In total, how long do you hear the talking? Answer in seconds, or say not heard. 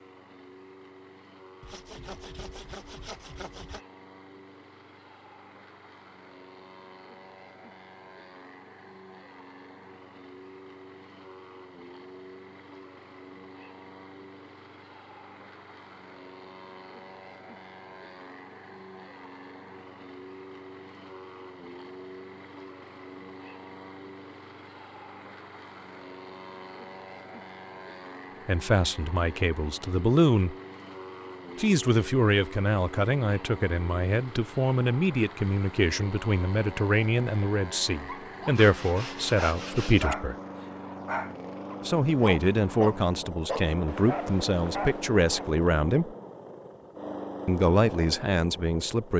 17 s.